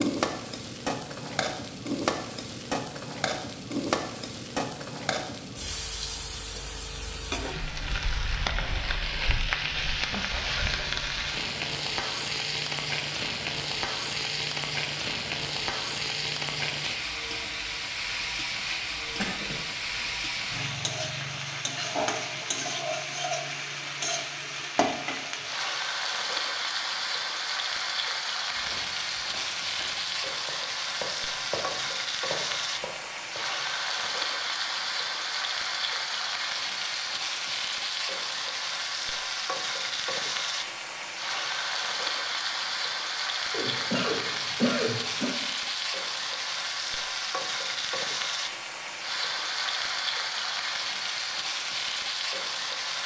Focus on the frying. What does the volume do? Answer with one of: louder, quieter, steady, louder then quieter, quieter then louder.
steady.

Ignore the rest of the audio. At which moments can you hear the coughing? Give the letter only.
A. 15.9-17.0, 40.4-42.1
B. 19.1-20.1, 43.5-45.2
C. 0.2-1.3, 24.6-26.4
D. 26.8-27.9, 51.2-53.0
B.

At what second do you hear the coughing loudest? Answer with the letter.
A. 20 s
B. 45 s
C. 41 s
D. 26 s
B.